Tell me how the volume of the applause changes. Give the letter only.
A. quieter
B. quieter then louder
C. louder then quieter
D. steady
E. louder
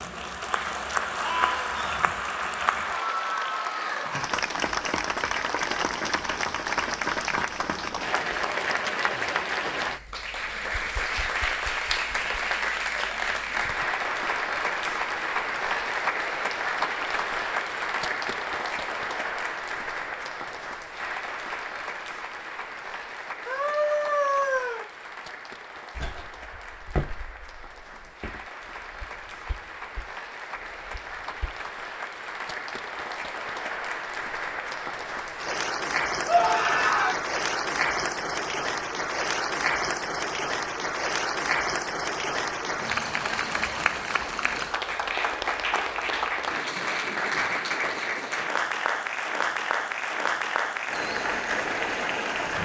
B.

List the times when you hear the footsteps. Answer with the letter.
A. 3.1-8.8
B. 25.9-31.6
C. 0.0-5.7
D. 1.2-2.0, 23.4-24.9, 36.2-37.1
B.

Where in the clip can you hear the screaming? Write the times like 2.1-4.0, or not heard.
1.2-2.0, 23.4-24.9, 36.2-37.1.